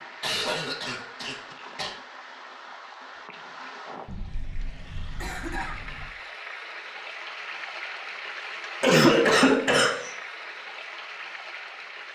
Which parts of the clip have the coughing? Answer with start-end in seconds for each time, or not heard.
0.2-1.9, 4.0-6.1, 8.8-10.1.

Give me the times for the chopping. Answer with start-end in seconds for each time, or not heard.
not heard.